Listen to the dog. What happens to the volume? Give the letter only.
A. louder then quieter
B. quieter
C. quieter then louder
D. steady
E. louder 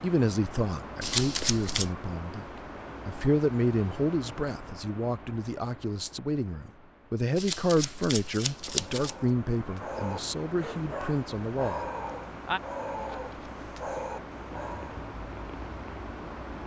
D.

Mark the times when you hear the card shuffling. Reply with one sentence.
You can hear the card shuffling from 1.0 to 1.9 s, from 7.3 to 9.2 s and from 12.9 to 13.3 s.